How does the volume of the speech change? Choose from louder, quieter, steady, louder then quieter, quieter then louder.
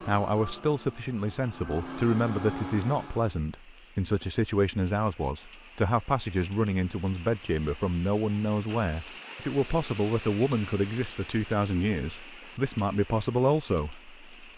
steady.